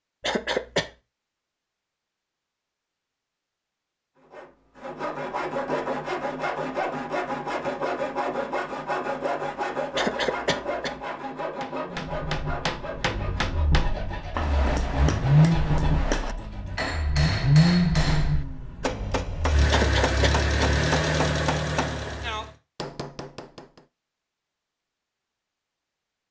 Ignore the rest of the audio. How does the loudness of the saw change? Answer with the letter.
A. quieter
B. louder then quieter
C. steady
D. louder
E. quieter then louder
A.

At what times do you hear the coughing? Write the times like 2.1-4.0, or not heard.
0.2-0.9, 9.9-11.0, 19.7-20.5.